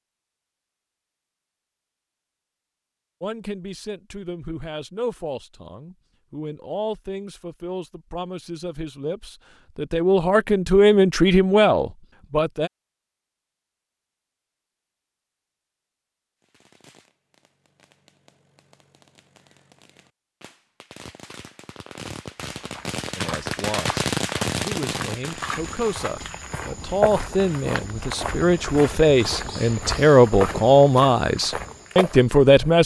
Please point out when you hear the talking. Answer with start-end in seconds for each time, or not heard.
3.2-12.7, 23.1-32.8.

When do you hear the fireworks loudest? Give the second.
24 s.